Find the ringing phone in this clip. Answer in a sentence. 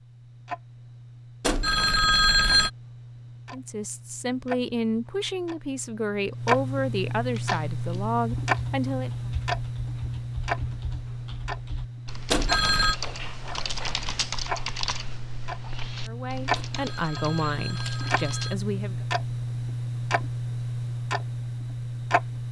You can hear the ringing phone from 1.4 to 2.7 s, from 12.3 to 12.9 s and from 16.6 to 18.6 s.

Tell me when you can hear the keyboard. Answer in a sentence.
You can hear the keyboard from 7.3 to 18.5 s.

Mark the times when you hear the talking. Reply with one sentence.
The talking can be heard from 3.5 to 9.1 s and from 16.1 to 19.1 s.